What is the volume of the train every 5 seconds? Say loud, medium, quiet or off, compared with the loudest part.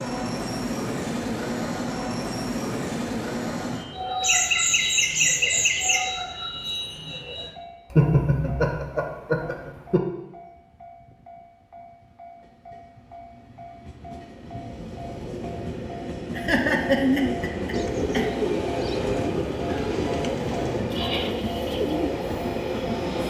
loud, medium, quiet, loud, loud.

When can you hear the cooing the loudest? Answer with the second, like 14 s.
17 s.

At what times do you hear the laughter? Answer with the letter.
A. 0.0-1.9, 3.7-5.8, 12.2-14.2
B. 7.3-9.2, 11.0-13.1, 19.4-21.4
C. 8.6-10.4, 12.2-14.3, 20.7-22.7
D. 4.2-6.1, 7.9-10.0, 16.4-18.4
D.